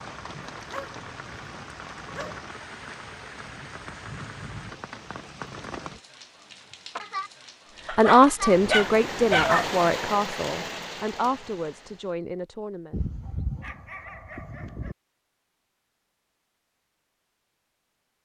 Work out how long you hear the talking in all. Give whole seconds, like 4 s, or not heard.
5 s.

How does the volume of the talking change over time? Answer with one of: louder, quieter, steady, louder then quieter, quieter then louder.
quieter.